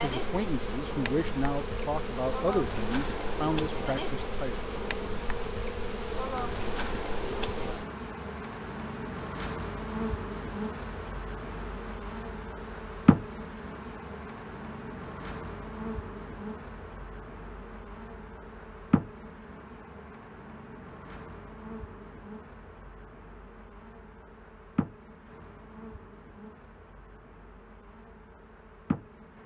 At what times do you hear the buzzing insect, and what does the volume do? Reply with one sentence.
The buzzing insect can be heard from 0.0 to 29.4 s, getting quieter.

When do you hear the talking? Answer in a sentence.
You can hear the talking from 0.0 to 4.5 s.